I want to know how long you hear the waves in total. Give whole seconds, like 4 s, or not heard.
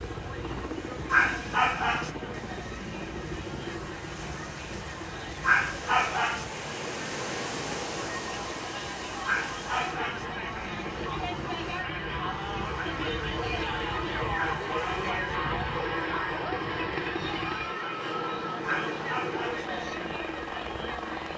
15 s.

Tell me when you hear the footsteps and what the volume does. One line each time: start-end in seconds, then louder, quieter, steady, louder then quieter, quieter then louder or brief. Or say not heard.
not heard.